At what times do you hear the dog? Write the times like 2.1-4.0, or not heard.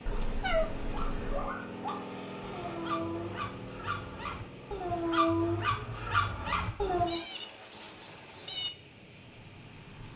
0.8-7.2.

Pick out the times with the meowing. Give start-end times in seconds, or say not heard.
0.1-1.5, 7.0-8.7.